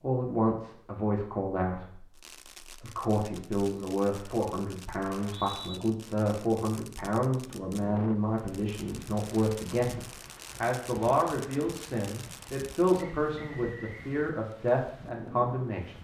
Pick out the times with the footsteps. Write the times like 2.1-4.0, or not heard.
not heard.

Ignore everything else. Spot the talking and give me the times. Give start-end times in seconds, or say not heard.
0.0-15.9.